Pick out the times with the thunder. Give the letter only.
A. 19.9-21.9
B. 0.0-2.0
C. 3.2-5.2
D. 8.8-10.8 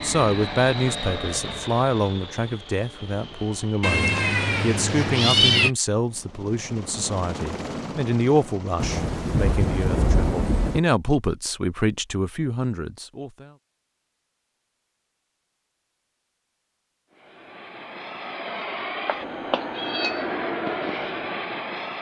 D.